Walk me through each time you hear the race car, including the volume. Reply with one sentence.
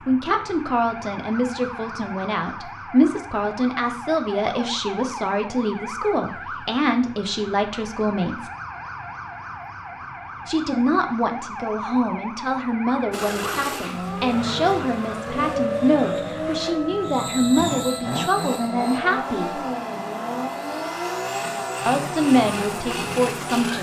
The race car can be heard from 13.1 to 23.7 s, at a steady volume.